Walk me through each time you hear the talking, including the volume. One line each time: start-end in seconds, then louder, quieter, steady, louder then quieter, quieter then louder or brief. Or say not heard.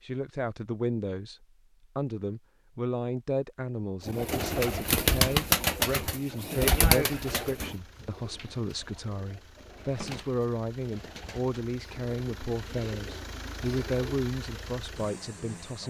0.0-15.8 steady.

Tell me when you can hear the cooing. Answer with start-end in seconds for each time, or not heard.
4.0-14.1.